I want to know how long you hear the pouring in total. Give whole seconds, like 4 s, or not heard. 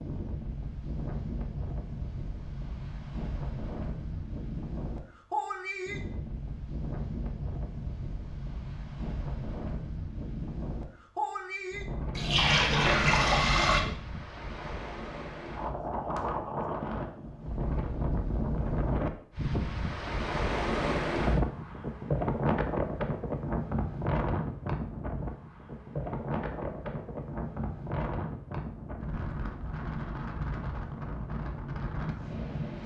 2 s.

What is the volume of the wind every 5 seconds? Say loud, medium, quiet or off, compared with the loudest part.
medium, medium, medium, loud, loud, medium, medium.